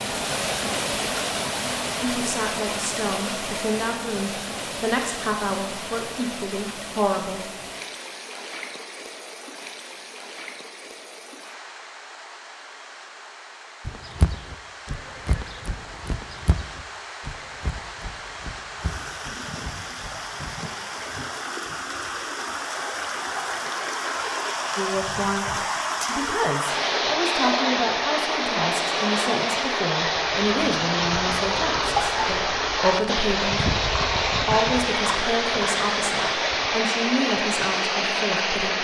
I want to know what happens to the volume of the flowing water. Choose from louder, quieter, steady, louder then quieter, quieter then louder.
quieter then louder.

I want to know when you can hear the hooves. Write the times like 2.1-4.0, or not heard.
13.8-20.5, 30.1-36.7.